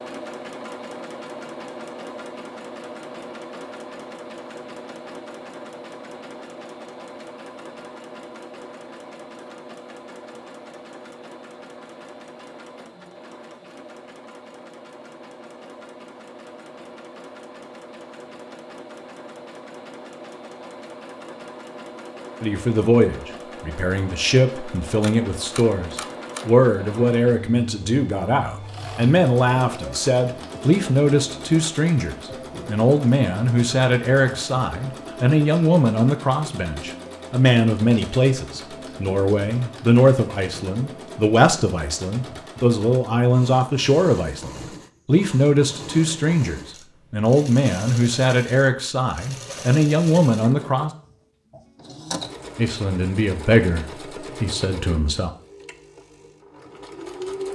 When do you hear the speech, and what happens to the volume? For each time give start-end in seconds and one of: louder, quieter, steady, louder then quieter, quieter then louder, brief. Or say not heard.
22.4-50.9 steady
52.5-55.3 brief.